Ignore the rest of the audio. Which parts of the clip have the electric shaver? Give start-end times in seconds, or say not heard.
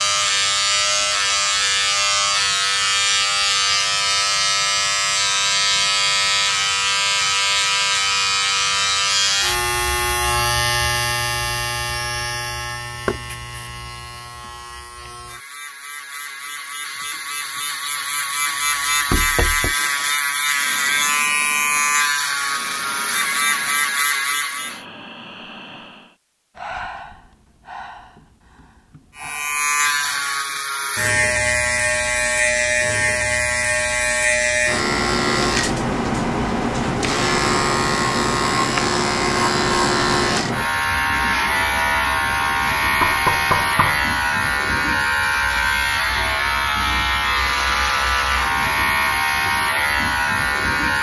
0.0-24.9, 29.1-50.9.